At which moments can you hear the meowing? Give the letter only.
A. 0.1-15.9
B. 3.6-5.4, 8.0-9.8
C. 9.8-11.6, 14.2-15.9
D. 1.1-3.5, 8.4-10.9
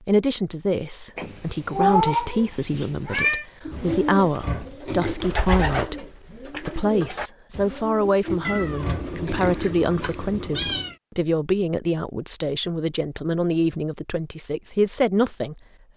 D.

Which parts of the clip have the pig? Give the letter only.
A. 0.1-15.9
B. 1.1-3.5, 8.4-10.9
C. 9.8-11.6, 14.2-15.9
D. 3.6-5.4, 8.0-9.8
D.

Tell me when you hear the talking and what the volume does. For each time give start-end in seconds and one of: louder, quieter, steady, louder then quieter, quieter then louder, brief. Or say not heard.
0.1-15.9 steady.